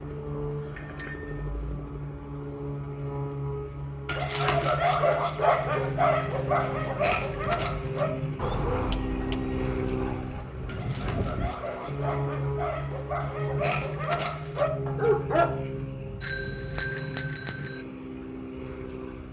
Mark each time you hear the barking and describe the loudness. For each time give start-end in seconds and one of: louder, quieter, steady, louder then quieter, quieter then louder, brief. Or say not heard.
4.0-15.5 quieter then louder.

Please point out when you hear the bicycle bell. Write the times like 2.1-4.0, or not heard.
0.8-1.8, 8.3-9.8, 16.2-17.8.